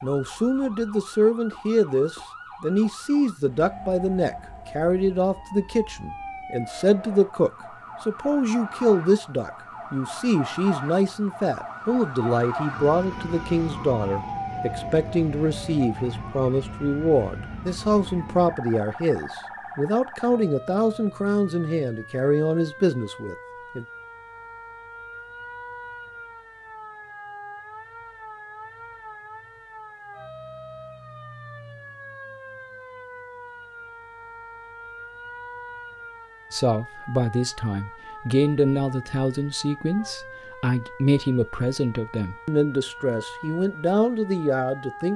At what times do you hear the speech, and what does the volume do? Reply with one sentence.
You can hear the speech from 0.0 to 23.9 s, at a steady volume; and from 36.5 to 45.1 s, at a steady volume.